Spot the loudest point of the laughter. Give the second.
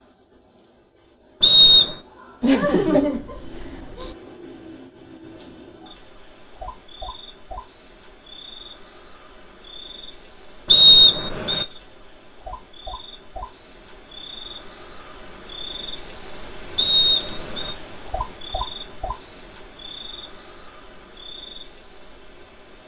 3 s.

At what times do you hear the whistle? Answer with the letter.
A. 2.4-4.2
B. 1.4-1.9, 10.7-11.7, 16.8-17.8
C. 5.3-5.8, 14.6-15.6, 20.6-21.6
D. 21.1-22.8
B.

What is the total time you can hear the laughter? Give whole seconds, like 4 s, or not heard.
2 s.